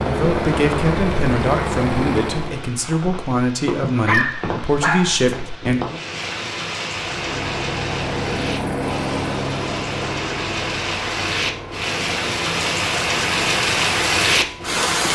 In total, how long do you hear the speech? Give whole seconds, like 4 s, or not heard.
6 s.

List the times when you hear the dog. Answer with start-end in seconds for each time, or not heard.
4.0-5.5.